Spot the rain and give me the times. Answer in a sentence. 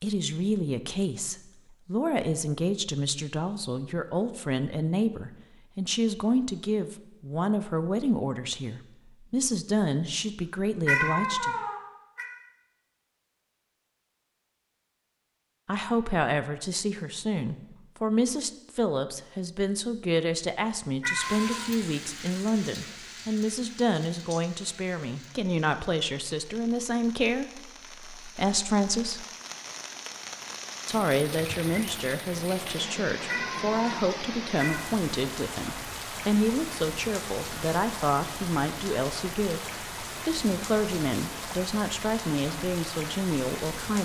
You can hear the rain from 21.1 to 44.0 s.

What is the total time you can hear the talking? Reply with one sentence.
The talking can be heard for 38 seconds in total.